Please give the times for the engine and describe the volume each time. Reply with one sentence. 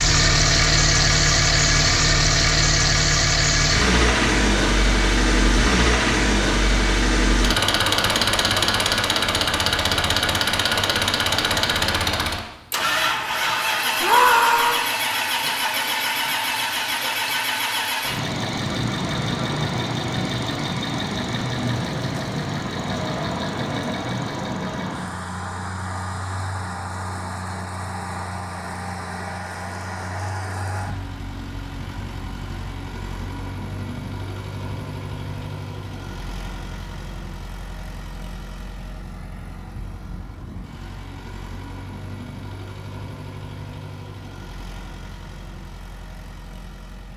You can hear the engine from 0.0 to 47.1 s, getting quieter.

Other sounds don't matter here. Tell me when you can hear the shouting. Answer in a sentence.
You can hear the shouting from 14.0 to 14.9 s.